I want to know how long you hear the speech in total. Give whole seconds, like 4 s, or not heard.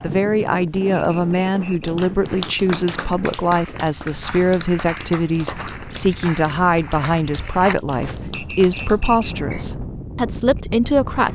11 s.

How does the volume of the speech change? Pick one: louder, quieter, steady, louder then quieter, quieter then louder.
steady.